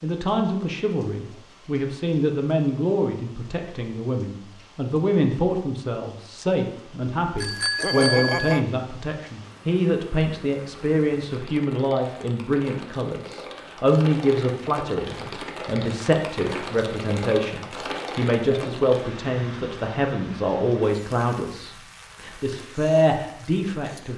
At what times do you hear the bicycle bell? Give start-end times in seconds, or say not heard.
7.3-8.7.